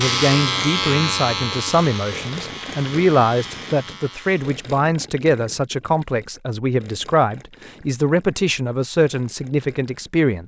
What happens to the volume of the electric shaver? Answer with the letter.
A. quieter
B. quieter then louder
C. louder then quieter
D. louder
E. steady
A.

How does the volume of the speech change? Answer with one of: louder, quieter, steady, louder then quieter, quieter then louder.
steady.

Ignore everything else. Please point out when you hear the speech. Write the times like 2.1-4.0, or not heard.
0.0-10.4.